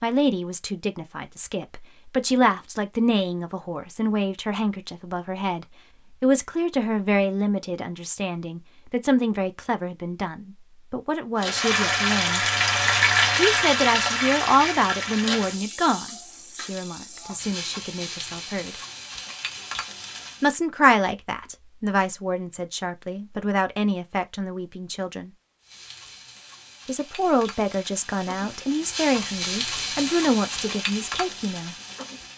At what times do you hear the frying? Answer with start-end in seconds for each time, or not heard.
11.3-20.6, 25.6-32.3.